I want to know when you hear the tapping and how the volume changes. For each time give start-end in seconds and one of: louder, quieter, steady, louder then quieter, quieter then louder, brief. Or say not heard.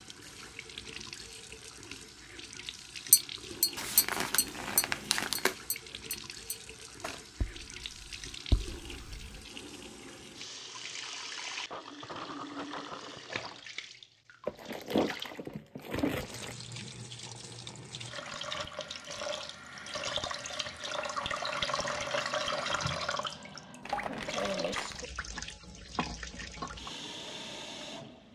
3.1-9.3 quieter then louder.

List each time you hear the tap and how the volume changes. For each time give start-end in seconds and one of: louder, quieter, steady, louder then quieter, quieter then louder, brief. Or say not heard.
0.0-28.3 louder.